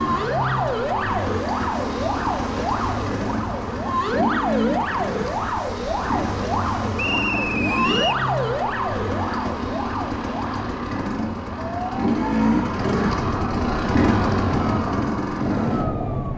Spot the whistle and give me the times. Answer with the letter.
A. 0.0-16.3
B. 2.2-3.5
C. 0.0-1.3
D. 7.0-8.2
D.